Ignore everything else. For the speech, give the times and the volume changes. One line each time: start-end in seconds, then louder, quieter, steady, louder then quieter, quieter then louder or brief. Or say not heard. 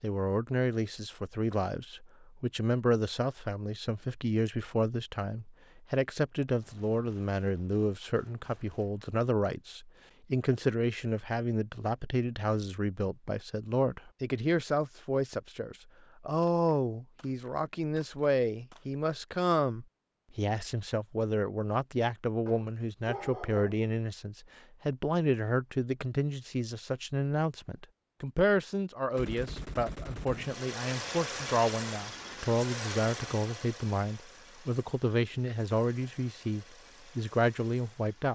0.0-38.3 steady.